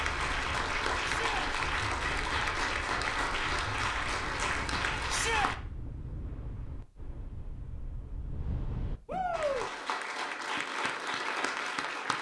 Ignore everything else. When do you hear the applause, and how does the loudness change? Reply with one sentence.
You can hear the applause from 0.0 to 5.5 s, at a steady volume; and briefly from 9.3 to 12.1 s.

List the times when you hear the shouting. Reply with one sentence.
You can hear the shouting from 1.0 to 1.4 s, from 5.0 to 5.5 s and from 9.1 to 9.7 s.